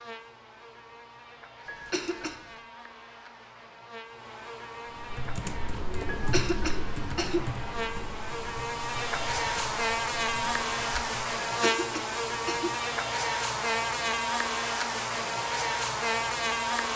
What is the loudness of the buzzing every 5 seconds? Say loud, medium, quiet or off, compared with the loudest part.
quiet, medium, loud, loud.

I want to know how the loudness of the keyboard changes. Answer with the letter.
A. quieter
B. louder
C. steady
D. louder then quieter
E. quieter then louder
A.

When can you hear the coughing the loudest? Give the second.
7 s.